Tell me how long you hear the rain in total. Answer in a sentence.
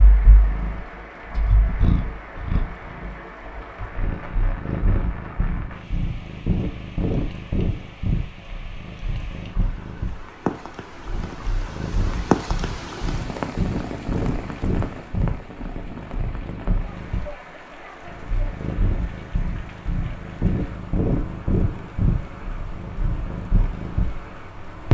You can hear the rain for 25 seconds altogether.